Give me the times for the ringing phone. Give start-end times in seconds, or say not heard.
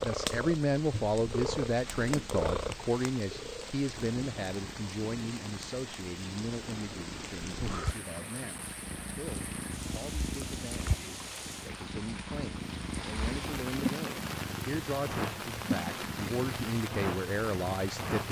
not heard.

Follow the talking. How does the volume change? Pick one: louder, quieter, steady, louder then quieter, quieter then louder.
quieter then louder.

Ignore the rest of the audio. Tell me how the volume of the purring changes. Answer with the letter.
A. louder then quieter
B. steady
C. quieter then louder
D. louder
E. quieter
C.